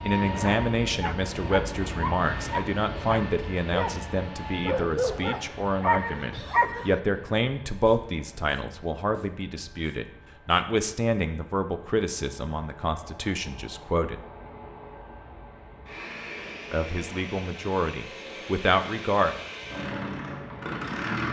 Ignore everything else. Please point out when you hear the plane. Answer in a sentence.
The plane can be heard from 0.0 to 21.2 s.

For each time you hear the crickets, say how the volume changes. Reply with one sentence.
You can't hear the crickets here.